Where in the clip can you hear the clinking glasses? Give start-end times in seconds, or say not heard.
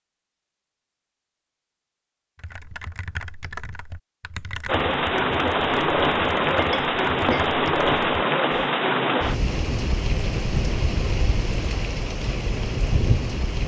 6.5-7.5.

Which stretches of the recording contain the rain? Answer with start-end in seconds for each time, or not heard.
4.7-13.6.